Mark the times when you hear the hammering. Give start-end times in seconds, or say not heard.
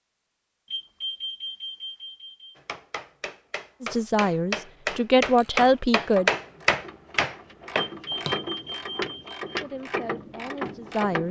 2.5-8.4.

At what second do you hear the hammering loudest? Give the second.
6 s.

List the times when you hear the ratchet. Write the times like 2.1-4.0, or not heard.
5.2-11.2.